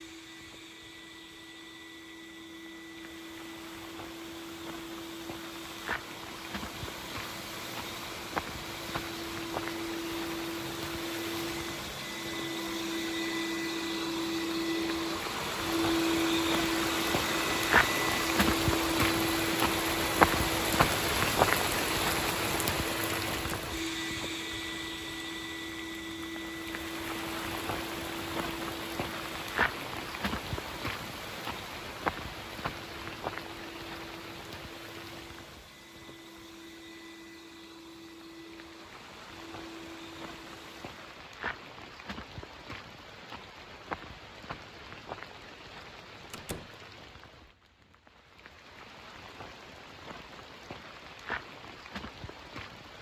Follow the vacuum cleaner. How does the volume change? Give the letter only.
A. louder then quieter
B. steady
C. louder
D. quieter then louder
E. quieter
A.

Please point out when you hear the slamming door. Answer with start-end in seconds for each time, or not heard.
23.3-23.8, 46.3-46.8.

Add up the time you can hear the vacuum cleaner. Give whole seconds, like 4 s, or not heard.
41 s.